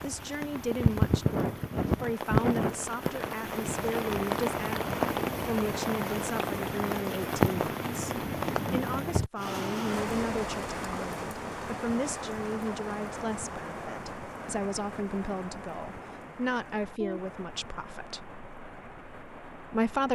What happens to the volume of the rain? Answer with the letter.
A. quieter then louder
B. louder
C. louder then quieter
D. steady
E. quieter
E.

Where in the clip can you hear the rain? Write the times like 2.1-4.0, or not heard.
0.0-20.1.